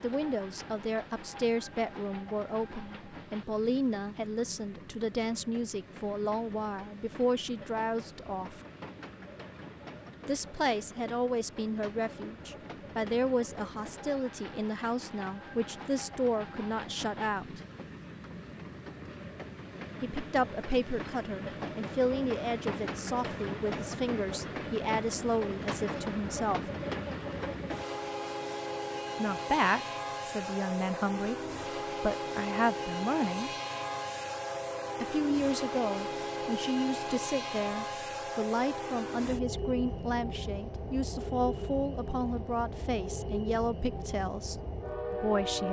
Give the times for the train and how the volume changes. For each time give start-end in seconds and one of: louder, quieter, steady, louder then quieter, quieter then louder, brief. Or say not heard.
0.0-45.6 louder.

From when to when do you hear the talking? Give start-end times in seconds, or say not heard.
0.0-8.6, 10.2-17.6, 20.0-26.6, 29.1-31.4, 32.0-33.5, 35.0-45.6.